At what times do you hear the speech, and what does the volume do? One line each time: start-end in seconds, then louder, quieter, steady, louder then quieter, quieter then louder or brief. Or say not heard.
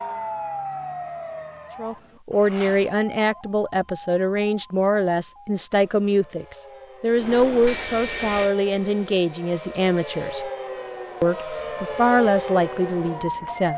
1.8-10.4 steady
11.2-13.7 brief.